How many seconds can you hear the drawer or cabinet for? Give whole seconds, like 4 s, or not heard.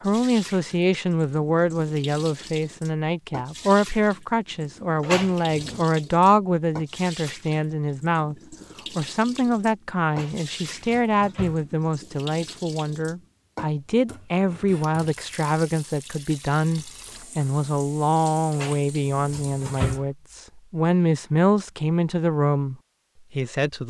4 s.